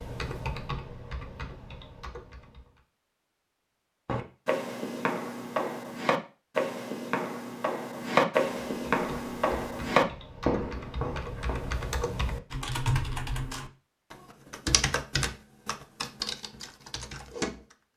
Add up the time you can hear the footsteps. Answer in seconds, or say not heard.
8 s.